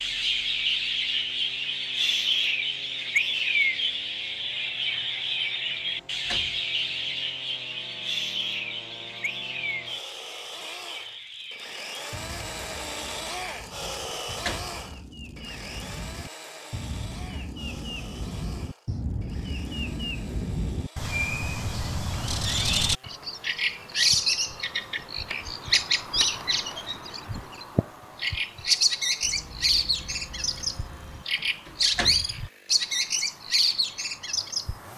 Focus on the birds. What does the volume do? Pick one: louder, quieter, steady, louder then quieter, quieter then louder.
quieter then louder.